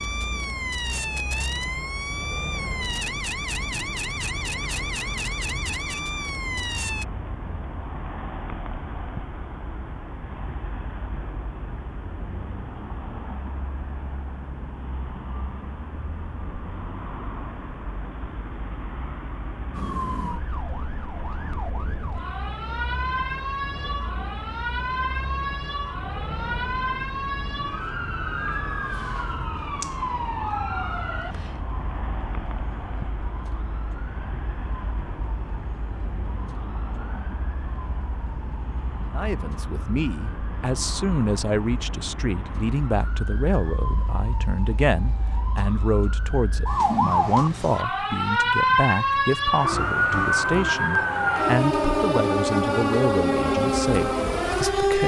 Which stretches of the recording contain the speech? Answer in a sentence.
The speech can be heard from 39.1 to 55.0 s.